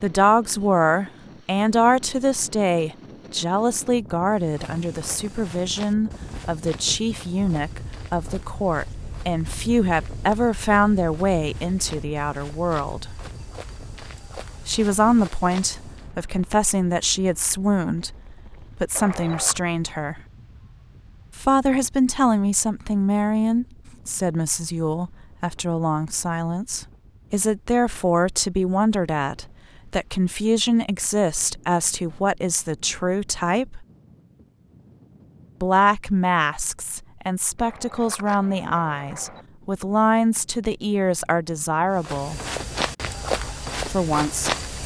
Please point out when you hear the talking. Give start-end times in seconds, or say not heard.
0.0-13.2, 14.7-18.1, 18.8-20.2, 21.4-33.9, 35.6-42.4, 43.9-44.5.